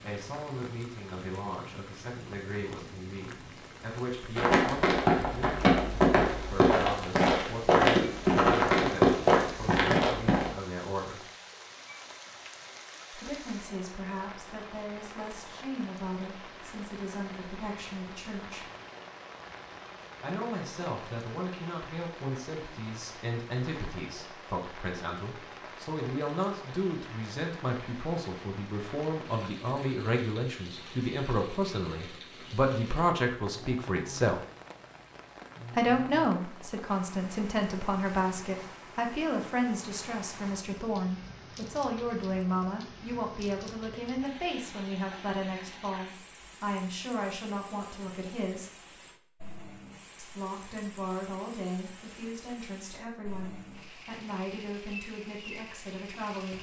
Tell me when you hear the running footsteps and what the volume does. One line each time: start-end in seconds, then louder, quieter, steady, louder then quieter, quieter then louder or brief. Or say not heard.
4.3-10.5 steady.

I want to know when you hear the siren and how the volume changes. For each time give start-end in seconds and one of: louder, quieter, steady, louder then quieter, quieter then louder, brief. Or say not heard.
not heard.